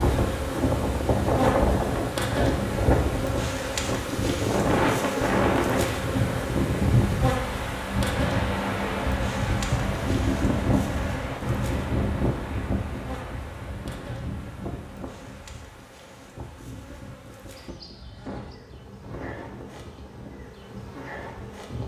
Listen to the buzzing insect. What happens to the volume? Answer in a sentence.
The loudness of the buzzing insect goes down.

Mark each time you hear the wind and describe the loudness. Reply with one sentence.
The wind can be heard from 0.0 to 21.8 s, getting quieter.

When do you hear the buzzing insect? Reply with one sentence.
You can hear the buzzing insect from 0.0 to 21.8 s.